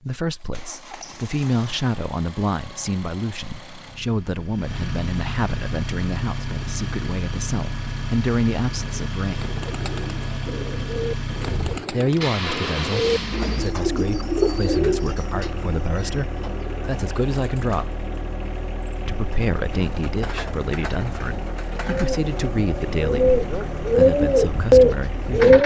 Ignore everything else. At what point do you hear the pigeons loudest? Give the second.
25 s.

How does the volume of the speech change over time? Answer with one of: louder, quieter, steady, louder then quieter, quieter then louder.
steady.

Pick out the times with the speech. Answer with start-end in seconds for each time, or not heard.
0.1-9.4, 11.9-18.1, 19.1-25.6.